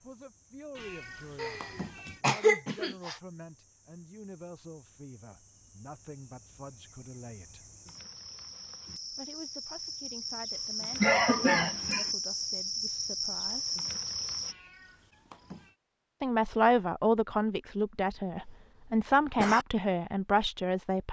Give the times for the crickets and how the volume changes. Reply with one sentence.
You can hear the crickets from 0.0 to 14.6 s, getting louder.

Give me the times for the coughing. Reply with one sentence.
You can hear the coughing from 1.4 to 3.2 s, from 11.0 to 12.1 s and from 18.4 to 19.6 s.